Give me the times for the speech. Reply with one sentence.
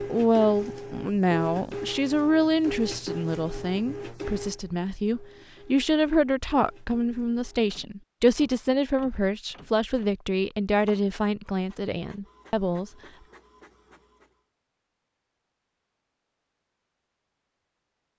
You can hear the speech from 0.0 to 12.9 s.